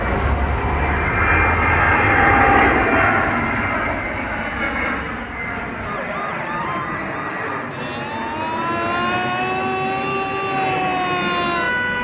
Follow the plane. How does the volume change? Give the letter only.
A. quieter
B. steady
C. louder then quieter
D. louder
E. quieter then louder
A.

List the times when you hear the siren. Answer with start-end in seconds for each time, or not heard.
0.0-11.9.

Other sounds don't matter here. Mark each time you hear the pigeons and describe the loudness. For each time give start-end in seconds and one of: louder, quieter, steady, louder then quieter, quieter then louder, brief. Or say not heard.
not heard.